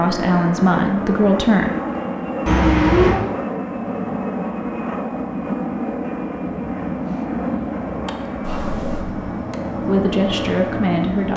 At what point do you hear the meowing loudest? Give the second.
3 s.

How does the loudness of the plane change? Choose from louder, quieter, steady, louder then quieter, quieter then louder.
steady.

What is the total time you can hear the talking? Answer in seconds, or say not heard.
3 s.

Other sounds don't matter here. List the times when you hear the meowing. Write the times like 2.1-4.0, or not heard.
2.5-3.2, 8.4-9.1.